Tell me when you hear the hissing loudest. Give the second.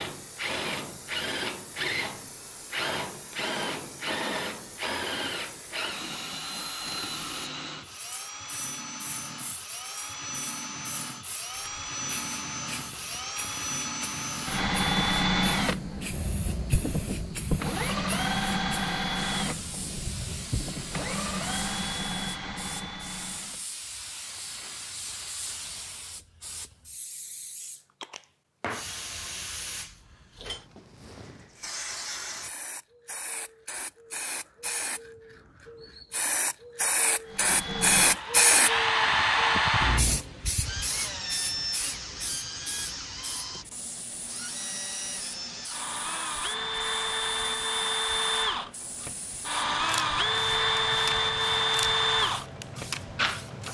38 s.